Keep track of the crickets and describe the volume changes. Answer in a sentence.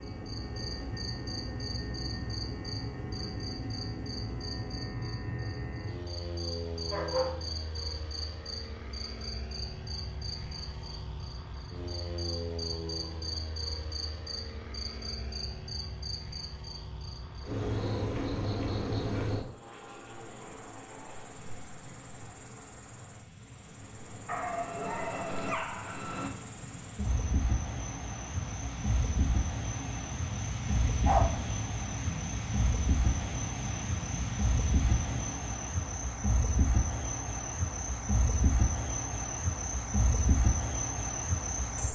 The volume of the crickets goes up.